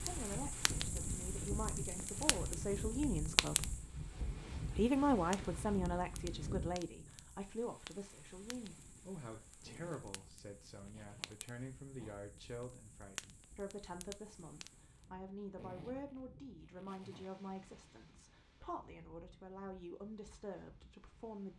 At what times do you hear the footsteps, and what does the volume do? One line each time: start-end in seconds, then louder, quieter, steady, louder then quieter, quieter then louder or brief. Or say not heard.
not heard.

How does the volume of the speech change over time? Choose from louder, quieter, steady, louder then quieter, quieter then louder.
quieter.